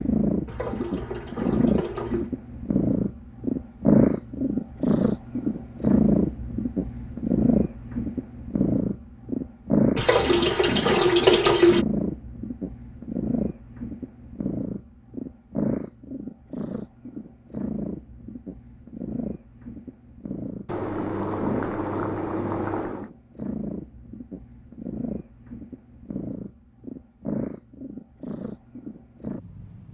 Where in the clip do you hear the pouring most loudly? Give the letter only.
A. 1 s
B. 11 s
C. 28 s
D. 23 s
B.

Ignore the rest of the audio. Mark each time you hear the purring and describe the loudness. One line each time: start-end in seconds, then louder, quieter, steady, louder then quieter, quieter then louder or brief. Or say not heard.
0.0-29.8 quieter.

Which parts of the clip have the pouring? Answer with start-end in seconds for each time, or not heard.
0.5-2.3, 9.9-11.8, 20.6-23.1.